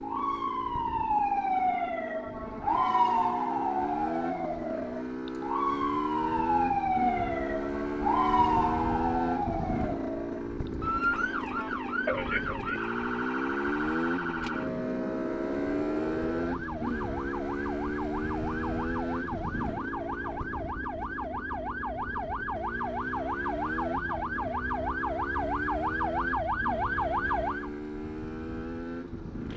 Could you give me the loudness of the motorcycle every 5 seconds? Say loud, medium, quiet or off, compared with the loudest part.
medium, loud, loud, loud, medium, medium.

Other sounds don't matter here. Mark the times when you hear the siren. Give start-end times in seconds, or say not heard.
0.0-27.7.